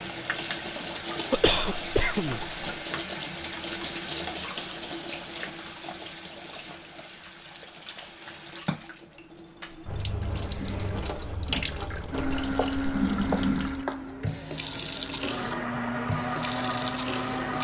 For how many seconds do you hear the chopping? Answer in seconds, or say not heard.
2 s.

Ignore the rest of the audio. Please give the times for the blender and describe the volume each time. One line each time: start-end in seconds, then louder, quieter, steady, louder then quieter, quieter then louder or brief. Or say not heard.
12.1-17.5 quieter then louder.